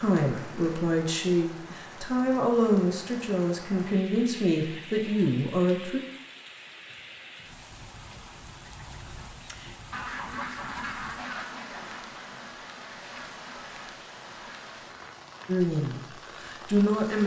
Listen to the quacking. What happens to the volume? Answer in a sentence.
The loudness of the quacking goes up, then down.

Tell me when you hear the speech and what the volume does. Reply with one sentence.
You can hear the speech from 0.0 to 6.0 s, at a steady volume; and briefly from 15.4 to 17.2 s.